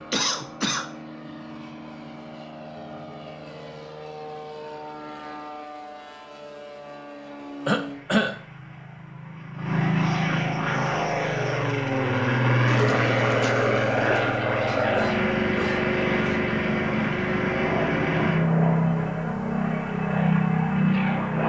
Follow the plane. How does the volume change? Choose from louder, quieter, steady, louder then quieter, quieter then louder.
louder.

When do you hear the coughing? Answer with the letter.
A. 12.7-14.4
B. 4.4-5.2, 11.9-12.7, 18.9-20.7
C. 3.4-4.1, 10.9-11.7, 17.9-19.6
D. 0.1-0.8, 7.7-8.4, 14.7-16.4
D.